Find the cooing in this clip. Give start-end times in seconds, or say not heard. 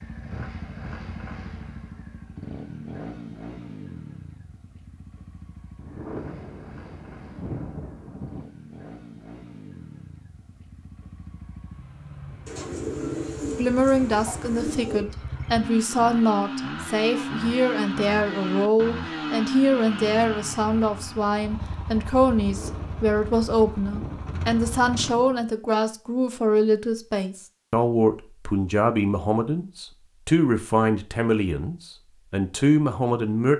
12.4-15.1.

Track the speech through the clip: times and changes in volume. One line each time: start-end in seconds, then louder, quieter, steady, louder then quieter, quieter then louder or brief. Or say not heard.
13.6-33.5 steady.